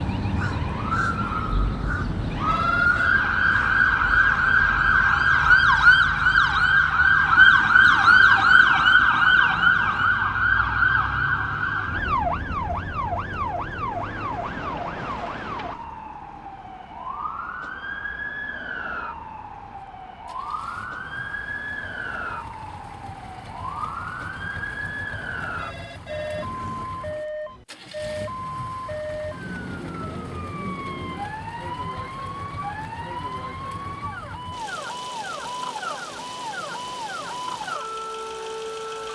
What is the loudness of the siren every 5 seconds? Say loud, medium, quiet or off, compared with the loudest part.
medium, loud, medium, quiet, quiet, quiet, quiet, quiet.